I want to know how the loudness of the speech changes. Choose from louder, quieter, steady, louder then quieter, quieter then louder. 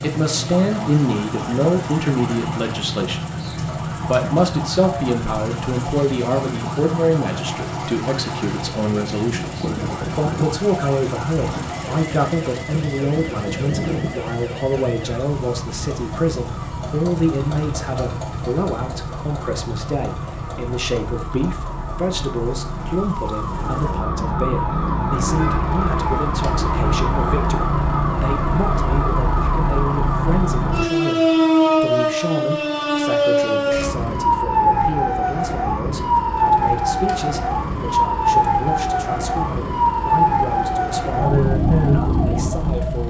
quieter.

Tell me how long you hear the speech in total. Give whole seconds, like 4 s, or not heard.
43 s.